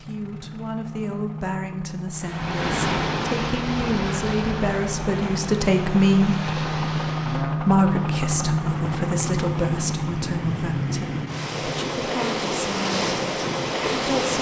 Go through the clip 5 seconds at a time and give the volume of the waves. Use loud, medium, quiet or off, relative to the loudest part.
loud, medium, loud.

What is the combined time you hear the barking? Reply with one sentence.
The barking can't be heard in this clip.